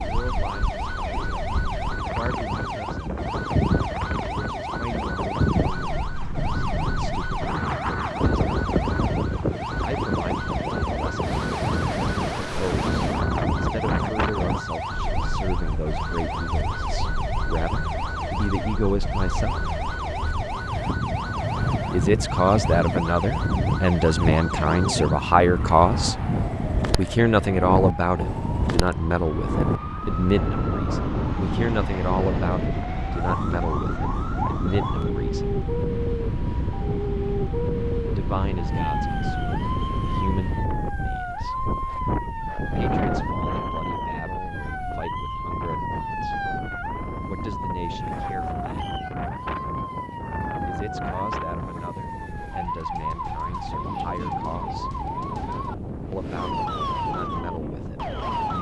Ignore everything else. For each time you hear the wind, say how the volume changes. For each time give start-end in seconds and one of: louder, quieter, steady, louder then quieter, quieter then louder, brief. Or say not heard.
0.0-58.5 quieter.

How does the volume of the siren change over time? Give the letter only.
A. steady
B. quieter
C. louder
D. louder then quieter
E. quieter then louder
A.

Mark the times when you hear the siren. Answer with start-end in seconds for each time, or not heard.
0.0-58.5.